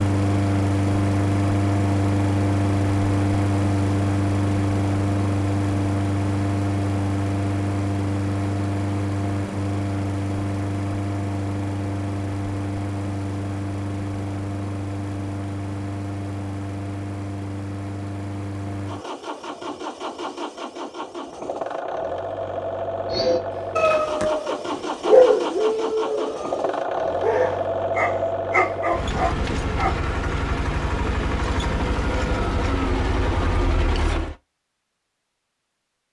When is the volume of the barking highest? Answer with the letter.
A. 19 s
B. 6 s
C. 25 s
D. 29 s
C.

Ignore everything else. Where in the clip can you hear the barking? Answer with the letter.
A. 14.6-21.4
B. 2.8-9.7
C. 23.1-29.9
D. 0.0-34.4
C.